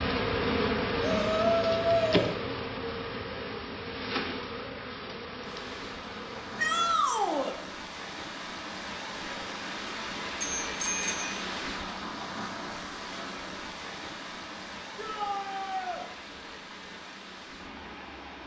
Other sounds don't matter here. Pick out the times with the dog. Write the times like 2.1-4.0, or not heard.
not heard.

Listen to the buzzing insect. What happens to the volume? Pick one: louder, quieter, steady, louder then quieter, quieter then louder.
quieter.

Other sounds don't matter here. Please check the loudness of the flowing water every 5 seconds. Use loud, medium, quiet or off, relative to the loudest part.
off, loud, loud, medium.